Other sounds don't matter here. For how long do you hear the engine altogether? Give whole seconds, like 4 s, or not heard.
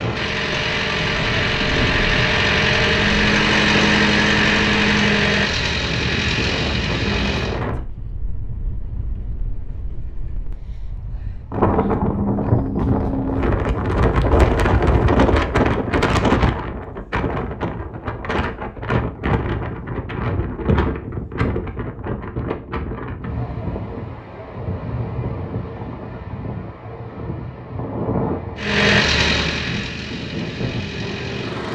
11 s.